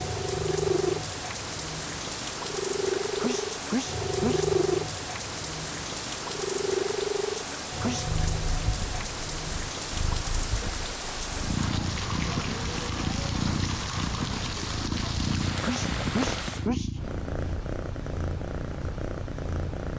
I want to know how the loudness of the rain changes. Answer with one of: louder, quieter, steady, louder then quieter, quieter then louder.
steady.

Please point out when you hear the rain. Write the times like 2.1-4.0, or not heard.
0.0-16.7.